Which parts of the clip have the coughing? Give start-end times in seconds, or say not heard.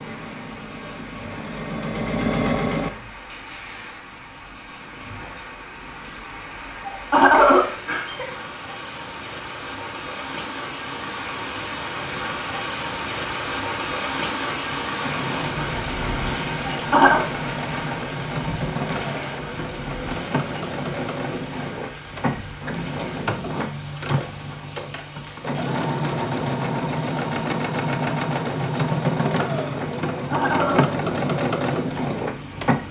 6.8-8.3, 16.7-17.2, 30.1-30.9.